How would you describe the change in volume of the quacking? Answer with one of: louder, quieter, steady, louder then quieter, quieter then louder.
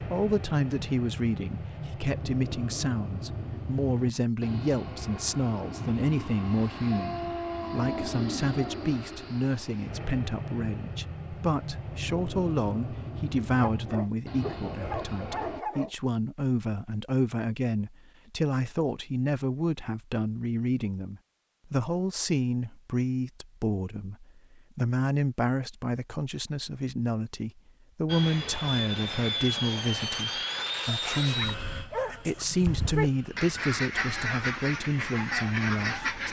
steady.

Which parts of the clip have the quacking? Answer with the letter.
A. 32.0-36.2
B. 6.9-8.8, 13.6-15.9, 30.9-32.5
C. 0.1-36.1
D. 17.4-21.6
A.